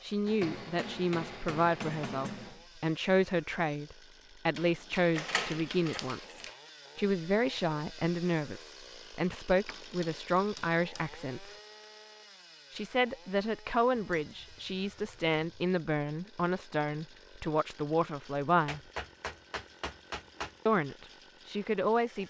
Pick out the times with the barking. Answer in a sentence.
You can't hear the barking here.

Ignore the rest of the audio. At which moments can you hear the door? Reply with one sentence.
You can hear the door from 5.1 to 6.5 s.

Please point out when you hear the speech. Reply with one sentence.
You can hear the speech from 0.0 to 11.6 s, from 12.7 to 18.8 s and from 20.6 to 22.2 s.